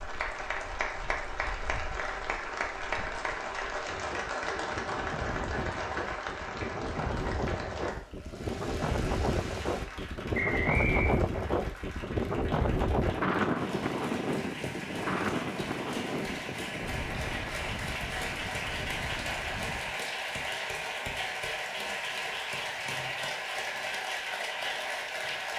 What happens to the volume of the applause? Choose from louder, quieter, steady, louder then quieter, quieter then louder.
quieter then louder.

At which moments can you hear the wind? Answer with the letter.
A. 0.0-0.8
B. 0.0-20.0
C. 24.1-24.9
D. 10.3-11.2
B.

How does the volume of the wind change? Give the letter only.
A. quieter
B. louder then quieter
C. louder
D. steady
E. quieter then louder
B.